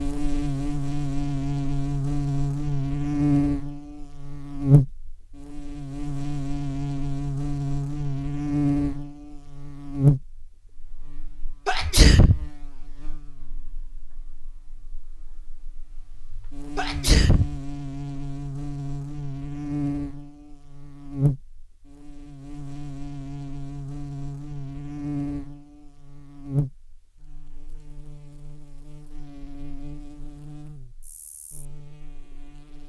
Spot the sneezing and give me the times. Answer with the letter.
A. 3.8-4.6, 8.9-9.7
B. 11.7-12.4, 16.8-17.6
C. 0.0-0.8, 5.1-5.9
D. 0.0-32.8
B.